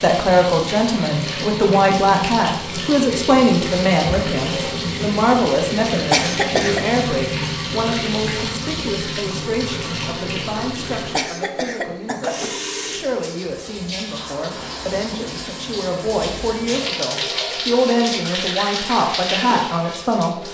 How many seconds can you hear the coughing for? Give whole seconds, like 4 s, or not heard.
2 s.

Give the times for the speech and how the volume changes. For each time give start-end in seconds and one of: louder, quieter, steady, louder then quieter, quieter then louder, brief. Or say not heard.
0.0-20.4 quieter then louder.